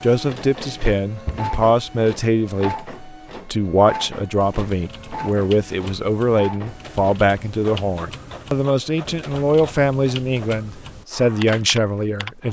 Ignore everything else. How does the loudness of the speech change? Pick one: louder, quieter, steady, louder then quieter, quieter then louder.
steady.